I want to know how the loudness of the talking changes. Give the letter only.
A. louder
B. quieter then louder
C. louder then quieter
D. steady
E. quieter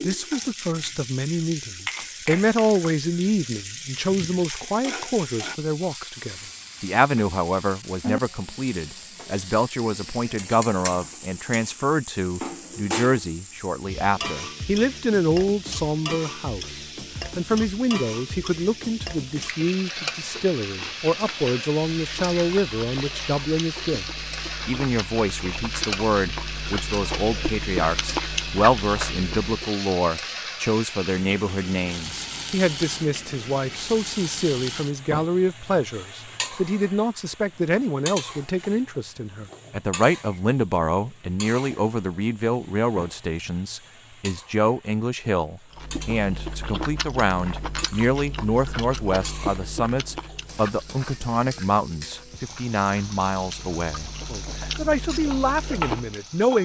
D.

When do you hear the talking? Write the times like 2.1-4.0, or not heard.
0.0-24.1, 24.6-56.5.